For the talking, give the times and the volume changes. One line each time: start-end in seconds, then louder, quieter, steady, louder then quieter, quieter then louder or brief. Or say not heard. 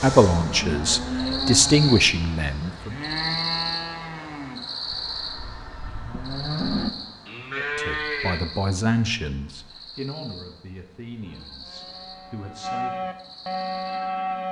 0.0-3.0 brief
7.5-13.2 quieter.